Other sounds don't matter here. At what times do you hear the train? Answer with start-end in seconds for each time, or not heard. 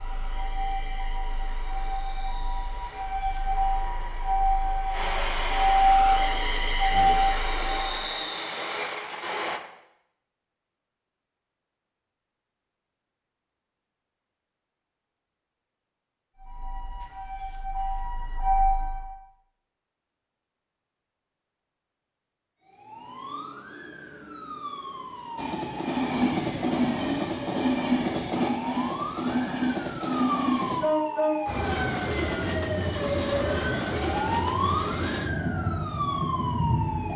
0.0-9.6, 25.4-37.1.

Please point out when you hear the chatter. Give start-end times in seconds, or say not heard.
not heard.